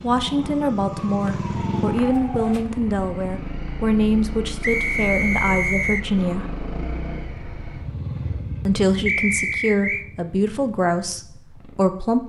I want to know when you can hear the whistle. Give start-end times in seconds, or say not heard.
1.2-2.2, 4.6-6.0, 9.1-10.1.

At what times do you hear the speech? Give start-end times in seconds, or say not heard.
0.0-6.5, 8.7-12.2.